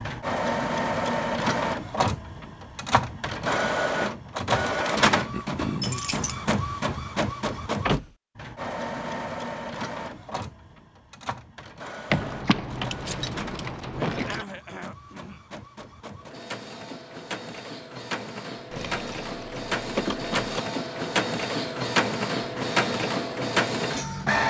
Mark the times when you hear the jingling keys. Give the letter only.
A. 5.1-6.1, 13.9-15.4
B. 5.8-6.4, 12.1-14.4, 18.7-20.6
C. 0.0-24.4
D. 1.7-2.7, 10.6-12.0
B.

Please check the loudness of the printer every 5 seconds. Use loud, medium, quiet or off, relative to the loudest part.
loud, loud, quiet, medium, loud.